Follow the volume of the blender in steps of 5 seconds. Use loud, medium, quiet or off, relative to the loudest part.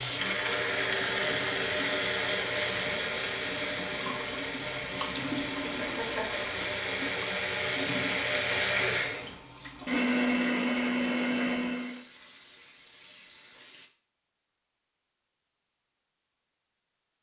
loud, loud, loud, off.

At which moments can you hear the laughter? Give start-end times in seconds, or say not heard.
5.6-6.5.